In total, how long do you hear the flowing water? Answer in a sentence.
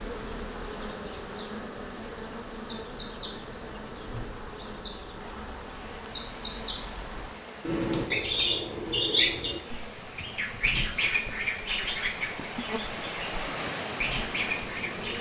The flowing water can be heard for 10 seconds in total.